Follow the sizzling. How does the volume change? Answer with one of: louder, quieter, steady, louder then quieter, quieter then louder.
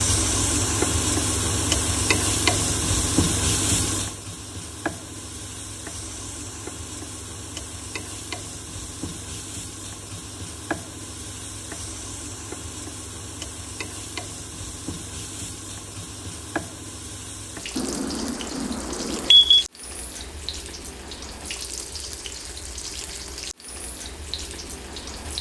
quieter.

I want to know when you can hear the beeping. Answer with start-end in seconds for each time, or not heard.
17.8-19.6.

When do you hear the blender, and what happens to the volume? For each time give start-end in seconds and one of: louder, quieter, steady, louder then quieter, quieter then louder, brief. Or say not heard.
not heard.